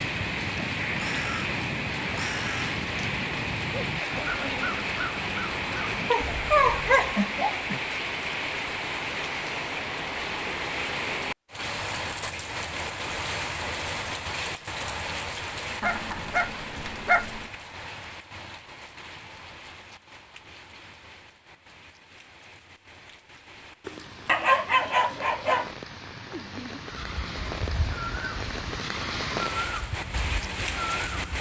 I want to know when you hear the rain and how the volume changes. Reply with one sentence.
The rain can be heard from 0.0 to 31.3 s, getting quieter then louder.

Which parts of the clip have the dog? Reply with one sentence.
The dog can be heard from 6.1 to 7.8 s, from 15.8 to 17.4 s and from 23.9 to 25.7 s.